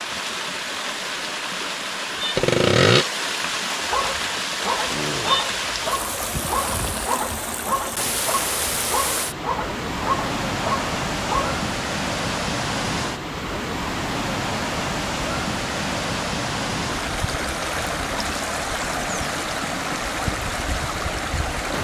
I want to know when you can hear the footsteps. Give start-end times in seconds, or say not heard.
not heard.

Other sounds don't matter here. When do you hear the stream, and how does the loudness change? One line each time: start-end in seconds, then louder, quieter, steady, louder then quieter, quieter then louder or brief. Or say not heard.
0.0-21.7 steady.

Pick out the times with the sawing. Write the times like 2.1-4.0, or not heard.
2.4-3.0.